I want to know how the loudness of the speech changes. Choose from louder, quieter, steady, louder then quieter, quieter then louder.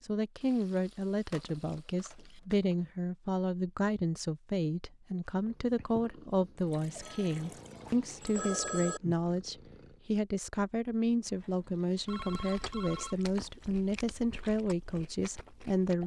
steady.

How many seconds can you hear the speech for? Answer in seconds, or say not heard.
16 s.